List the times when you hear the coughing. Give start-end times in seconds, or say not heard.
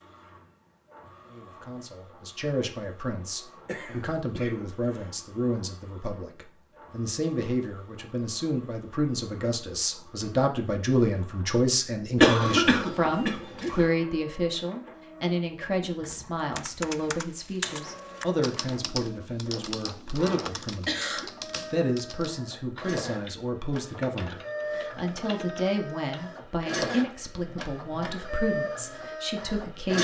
3.2-5.2, 12.2-13.8, 20.5-21.3.